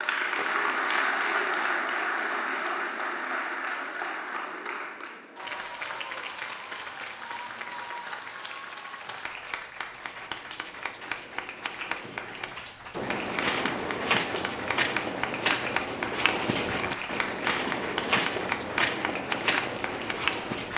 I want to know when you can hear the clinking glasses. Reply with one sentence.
The clinking glasses can't be heard in this clip.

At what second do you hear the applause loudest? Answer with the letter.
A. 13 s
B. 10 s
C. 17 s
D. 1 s
D.